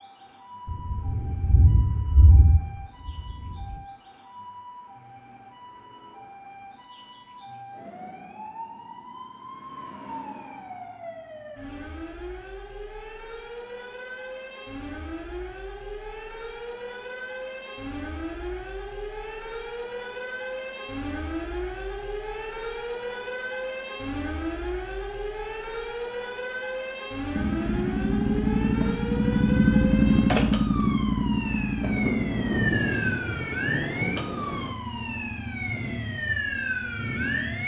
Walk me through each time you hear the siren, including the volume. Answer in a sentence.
You can hear the siren from 0.0 to 37.6 s, getting louder.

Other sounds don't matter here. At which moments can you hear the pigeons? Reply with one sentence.
You can't hear the pigeons here.